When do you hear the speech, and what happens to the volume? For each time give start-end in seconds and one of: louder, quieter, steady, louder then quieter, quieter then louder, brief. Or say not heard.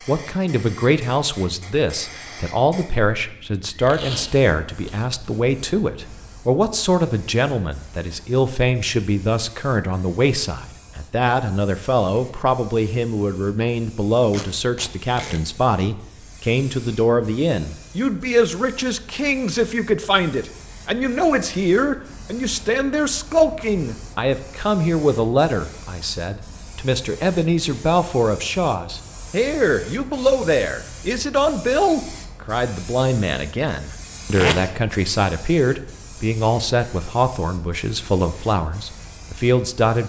0.1-40.0 steady.